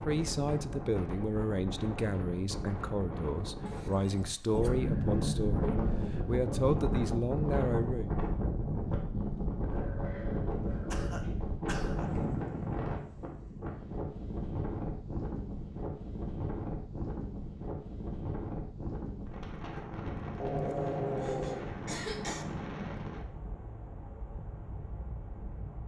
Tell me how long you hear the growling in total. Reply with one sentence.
The growling can be heard for 6 seconds in total.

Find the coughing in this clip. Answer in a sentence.
The coughing can be heard from 3.6 to 4.7 s, from 10.9 to 12.1 s and from 20.7 to 22.4 s.